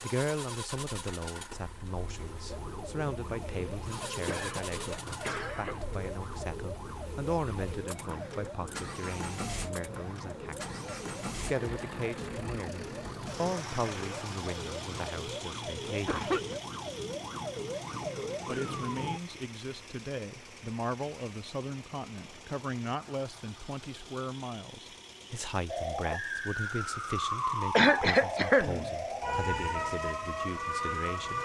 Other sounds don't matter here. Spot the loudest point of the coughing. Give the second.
28 s.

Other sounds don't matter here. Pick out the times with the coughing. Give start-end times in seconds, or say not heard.
3.9-5.8, 15.8-16.6, 27.8-28.9.